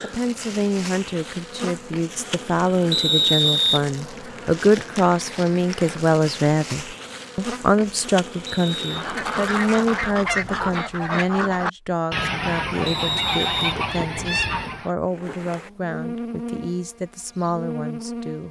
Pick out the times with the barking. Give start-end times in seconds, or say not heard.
not heard.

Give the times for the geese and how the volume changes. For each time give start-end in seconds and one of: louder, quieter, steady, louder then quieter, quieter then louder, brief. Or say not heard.
8.8-14.9 steady.